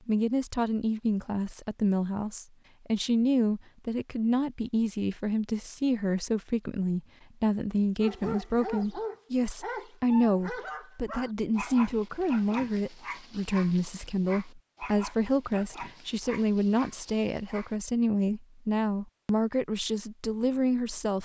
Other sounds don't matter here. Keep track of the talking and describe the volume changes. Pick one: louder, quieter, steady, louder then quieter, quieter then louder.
steady.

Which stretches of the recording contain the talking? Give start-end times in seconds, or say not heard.
0.1-21.2.